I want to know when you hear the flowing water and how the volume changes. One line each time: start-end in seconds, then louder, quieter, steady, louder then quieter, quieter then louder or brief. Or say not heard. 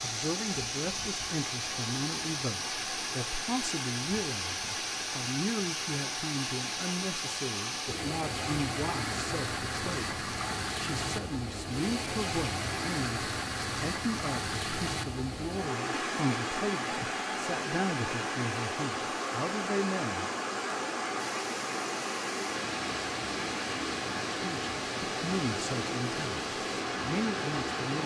0.0-28.0 steady.